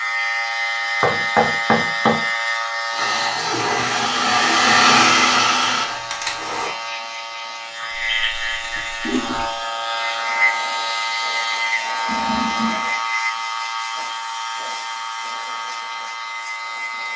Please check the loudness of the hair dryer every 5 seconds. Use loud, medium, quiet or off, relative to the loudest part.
loud, loud, off, off.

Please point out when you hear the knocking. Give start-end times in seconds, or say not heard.
1.0-2.2.